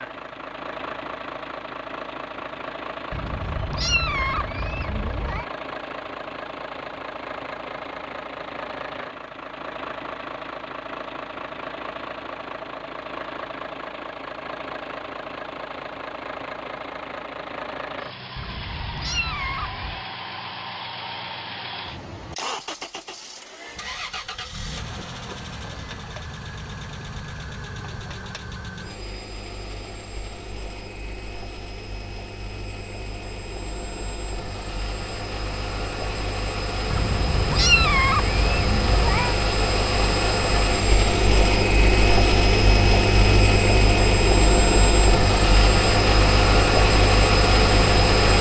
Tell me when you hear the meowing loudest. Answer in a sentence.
The loudest moment of the meowing is at 38 seconds.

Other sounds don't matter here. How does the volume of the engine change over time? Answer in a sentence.
The loudness of the engine goes up.